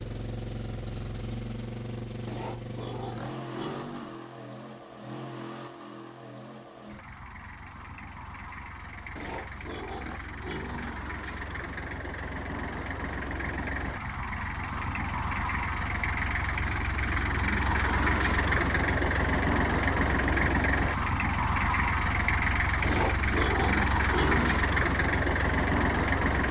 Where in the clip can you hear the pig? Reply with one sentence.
You can hear the pig from 2.2 to 4.2 s, from 9.2 to 11.1 s and from 22.8 to 24.6 s.